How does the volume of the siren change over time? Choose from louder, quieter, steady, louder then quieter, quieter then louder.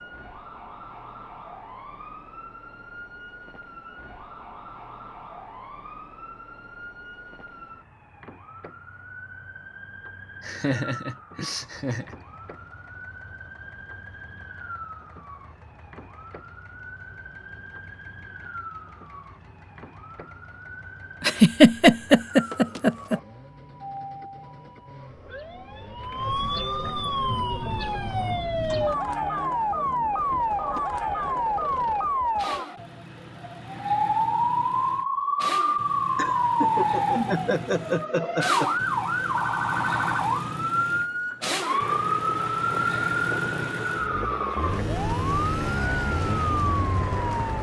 louder.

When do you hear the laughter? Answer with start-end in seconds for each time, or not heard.
10.4-12.2, 21.2-23.2, 36.1-38.7.